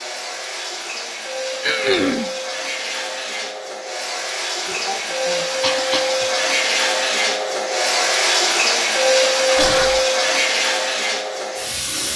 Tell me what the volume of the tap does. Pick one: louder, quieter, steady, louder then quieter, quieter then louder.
louder.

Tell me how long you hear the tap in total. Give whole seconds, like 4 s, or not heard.
12 s.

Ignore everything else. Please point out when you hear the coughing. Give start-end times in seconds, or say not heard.
1.6-2.3, 4.7-6.1, 9.6-10.0.